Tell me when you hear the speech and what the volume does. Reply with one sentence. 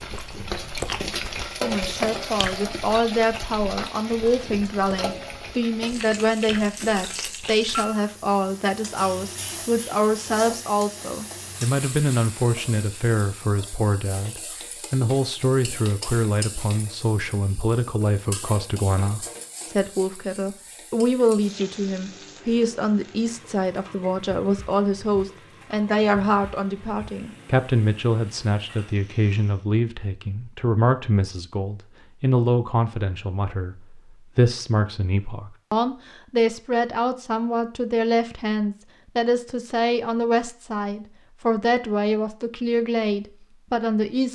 You can hear the speech from 1.6 to 44.3 s, at a steady volume.